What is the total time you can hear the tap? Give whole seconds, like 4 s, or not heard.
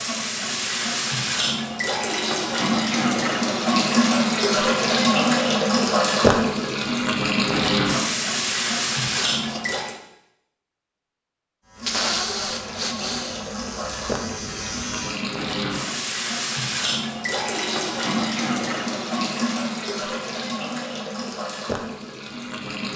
21 s.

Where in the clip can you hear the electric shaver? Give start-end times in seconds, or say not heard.
11.6-15.2.